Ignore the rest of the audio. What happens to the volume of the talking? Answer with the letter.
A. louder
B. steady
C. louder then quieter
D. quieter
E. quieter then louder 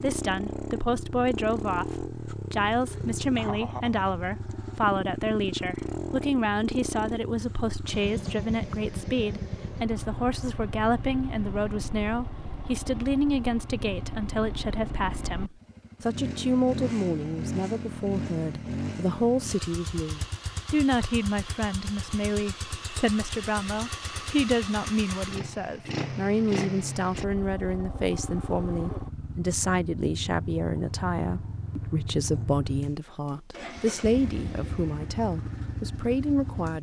B.